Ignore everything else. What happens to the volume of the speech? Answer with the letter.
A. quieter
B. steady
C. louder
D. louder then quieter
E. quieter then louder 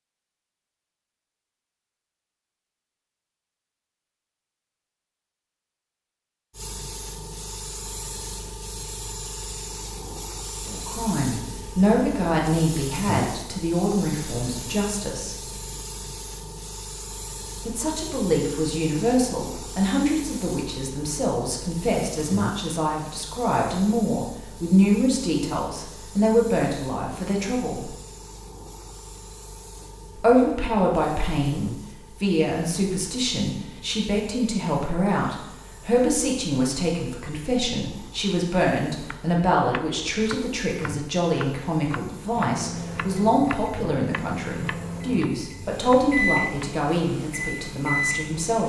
B.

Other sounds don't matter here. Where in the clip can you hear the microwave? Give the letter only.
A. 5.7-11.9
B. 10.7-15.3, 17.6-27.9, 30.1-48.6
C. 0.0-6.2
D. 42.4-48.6
D.